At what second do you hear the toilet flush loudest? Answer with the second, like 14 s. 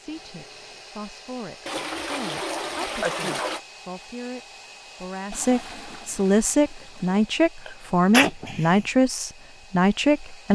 3 s.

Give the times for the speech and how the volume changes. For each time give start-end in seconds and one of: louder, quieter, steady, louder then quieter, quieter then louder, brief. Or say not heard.
0.0-10.4 louder.